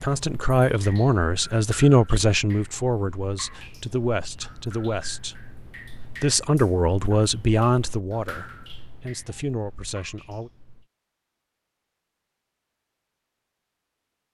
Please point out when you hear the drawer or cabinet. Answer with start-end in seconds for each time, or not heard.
not heard.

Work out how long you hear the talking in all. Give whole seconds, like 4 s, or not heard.
10 s.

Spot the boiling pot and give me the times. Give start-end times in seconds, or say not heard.
not heard.